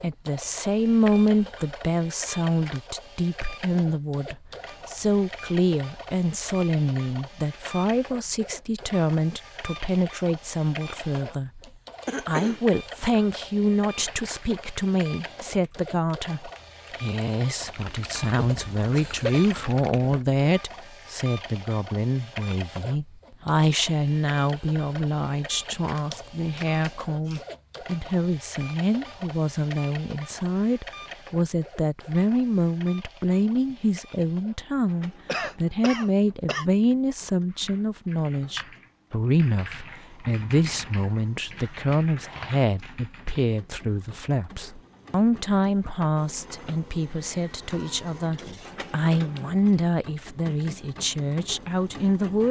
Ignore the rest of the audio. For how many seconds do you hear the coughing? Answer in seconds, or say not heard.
3 s.